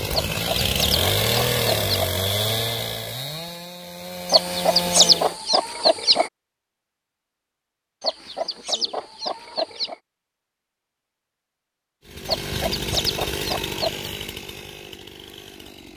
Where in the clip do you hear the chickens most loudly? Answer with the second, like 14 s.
5 s.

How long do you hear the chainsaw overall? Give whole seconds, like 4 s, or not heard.
9 s.